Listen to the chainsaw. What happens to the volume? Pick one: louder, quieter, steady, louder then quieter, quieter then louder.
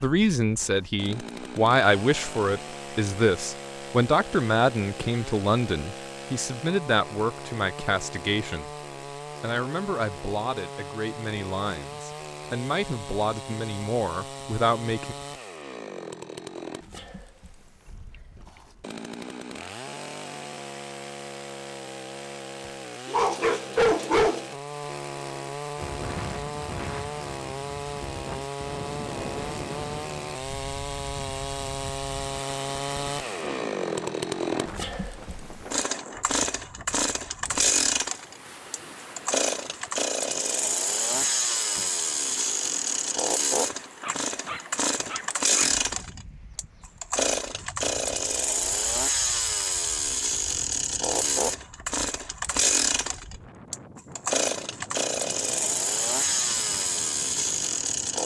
louder.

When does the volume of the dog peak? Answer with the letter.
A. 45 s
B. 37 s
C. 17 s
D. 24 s
D.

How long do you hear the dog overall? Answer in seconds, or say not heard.
3 s.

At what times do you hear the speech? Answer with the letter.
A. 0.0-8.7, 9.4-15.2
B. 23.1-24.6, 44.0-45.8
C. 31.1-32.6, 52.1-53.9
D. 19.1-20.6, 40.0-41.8
A.